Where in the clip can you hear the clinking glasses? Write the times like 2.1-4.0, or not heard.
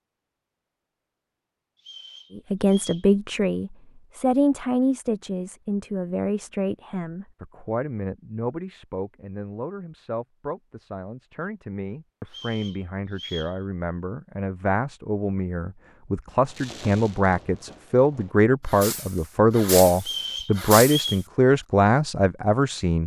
not heard.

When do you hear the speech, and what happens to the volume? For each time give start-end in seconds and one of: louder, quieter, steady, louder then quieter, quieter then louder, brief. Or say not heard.
2.4-23.0 quieter then louder.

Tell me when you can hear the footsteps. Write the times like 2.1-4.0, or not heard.
not heard.